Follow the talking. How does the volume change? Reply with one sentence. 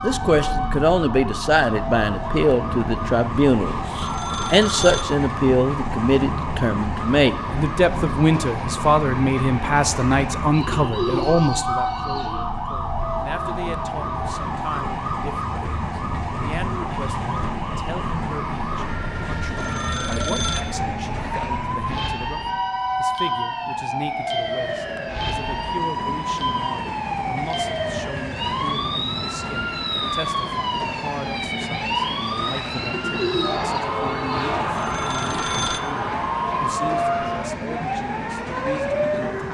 The loudness of the talking goes down.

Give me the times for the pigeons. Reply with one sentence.
The pigeons can be heard from 10.5 to 12.4 s and from 32.9 to 34.4 s.